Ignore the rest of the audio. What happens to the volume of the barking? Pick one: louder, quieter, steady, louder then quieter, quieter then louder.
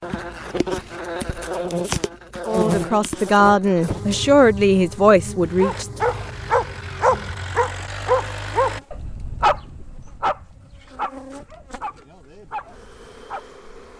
quieter.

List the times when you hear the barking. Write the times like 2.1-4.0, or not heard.
5.5-13.4.